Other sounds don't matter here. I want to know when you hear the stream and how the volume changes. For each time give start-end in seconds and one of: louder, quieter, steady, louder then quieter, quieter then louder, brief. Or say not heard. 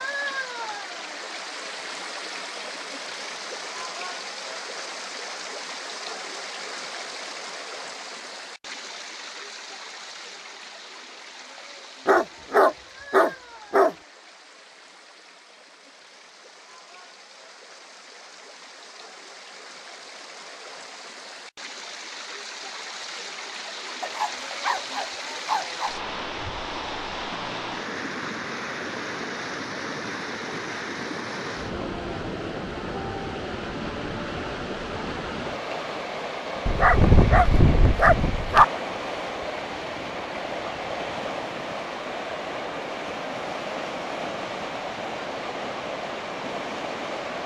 0.0-47.4 quieter then louder.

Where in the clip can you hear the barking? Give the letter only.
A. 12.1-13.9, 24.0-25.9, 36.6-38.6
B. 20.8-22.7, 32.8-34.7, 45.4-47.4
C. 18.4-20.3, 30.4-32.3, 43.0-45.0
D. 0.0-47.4
A.